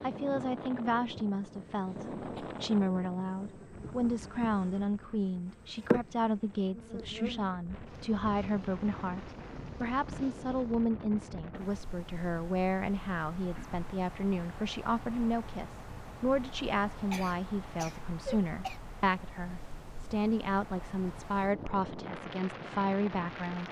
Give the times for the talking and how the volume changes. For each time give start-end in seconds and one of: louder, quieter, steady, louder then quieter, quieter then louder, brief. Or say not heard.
0.0-23.6 steady.